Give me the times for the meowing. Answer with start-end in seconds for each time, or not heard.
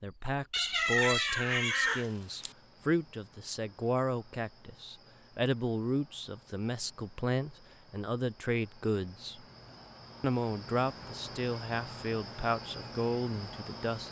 0.5-2.5.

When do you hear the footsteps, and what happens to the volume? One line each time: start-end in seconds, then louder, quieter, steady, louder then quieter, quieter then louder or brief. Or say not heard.
not heard.